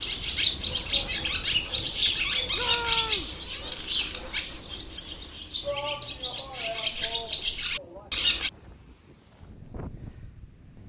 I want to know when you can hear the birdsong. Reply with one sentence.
You can hear the birdsong from 0.0 to 8.5 s.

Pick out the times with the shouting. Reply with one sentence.
The shouting can be heard from 2.5 to 3.4 s and from 5.6 to 8.1 s.